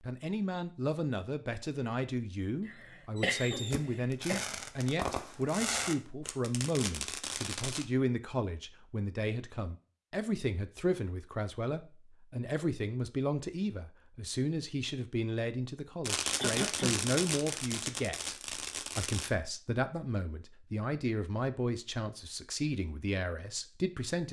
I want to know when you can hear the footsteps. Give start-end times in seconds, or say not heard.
not heard.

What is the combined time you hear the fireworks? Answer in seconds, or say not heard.
8 s.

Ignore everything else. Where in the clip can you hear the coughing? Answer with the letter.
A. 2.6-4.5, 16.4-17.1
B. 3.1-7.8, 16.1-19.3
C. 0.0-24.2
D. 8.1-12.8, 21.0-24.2
A.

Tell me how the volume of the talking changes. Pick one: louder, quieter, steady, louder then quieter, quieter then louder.
steady.